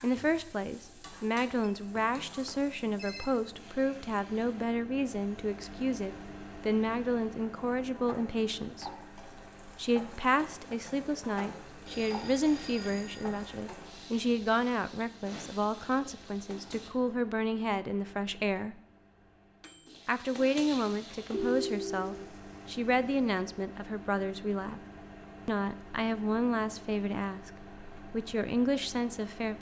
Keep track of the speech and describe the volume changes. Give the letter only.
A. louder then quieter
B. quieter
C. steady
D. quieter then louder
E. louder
C.